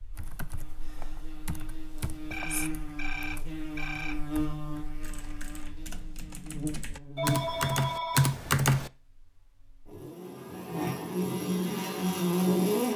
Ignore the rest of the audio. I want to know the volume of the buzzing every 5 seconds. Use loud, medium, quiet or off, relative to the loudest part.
medium, quiet, loud.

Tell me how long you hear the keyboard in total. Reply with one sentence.
You can hear the keyboard for 9 seconds altogether.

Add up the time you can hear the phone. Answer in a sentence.
You can hear the phone for 3 seconds altogether.